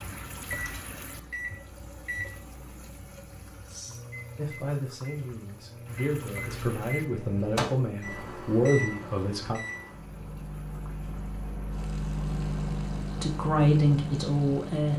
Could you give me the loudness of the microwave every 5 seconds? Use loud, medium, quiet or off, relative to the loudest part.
medium, loud, loud.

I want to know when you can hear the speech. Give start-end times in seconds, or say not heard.
4.3-9.6, 13.2-14.9.